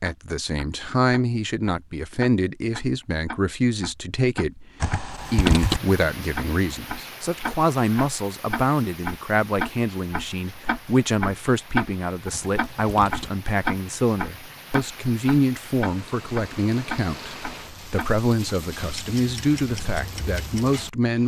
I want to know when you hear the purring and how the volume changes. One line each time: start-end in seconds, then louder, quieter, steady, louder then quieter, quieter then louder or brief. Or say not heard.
not heard.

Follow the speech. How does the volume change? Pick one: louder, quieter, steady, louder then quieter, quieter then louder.
steady.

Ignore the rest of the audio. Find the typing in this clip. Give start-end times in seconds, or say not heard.
4.8-5.8, 12.3-13.3.